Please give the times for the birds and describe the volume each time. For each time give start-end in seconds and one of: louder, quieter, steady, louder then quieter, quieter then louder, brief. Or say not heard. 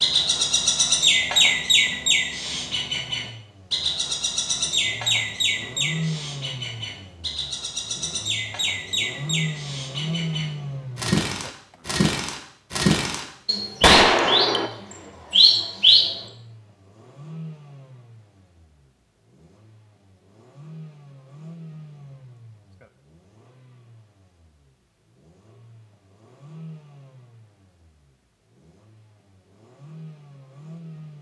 0.0-16.1 quieter then louder.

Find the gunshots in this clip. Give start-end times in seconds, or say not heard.
13.8-14.7.